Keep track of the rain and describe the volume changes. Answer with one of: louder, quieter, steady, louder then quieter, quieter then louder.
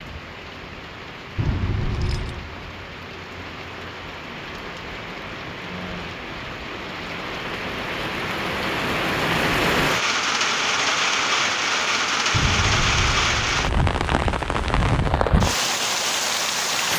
louder.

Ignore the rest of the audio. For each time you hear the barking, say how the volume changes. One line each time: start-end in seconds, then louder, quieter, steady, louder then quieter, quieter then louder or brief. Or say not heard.
not heard.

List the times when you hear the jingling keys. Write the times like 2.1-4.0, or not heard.
1.4-2.5, 12.3-14.3.